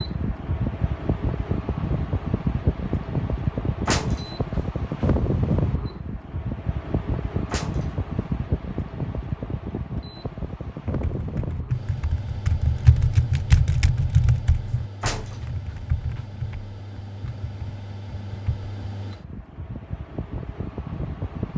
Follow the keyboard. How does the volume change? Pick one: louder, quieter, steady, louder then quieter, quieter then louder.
louder then quieter.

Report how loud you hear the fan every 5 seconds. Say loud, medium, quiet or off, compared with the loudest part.
loud, loud, medium, quiet, medium.